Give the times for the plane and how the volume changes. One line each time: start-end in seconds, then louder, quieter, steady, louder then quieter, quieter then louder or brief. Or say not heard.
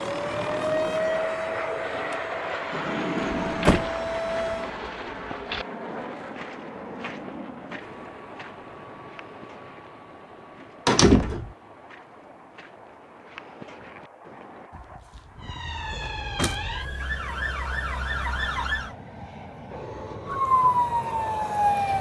0.0-21.9 quieter then louder.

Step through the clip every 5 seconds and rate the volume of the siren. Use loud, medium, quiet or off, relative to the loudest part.
medium, off, off, medium, loud.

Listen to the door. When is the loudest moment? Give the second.
11 s.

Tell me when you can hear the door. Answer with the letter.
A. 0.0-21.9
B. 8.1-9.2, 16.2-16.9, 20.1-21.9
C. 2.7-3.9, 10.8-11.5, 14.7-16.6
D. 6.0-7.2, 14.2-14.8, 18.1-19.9
C.